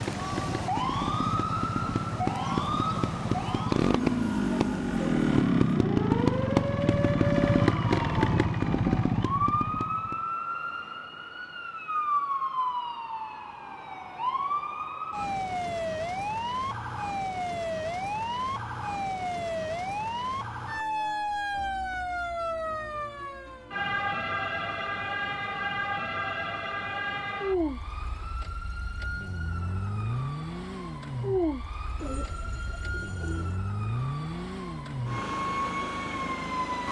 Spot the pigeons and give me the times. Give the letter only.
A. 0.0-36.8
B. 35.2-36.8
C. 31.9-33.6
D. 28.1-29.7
C.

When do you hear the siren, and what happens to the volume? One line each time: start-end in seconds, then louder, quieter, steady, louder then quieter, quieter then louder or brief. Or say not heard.
0.0-36.8 steady.